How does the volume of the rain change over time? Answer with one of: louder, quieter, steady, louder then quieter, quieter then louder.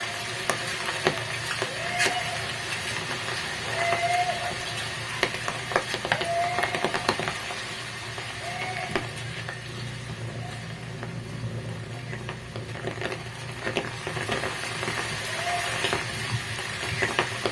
quieter then louder.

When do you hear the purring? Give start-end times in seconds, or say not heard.
0.0-17.4.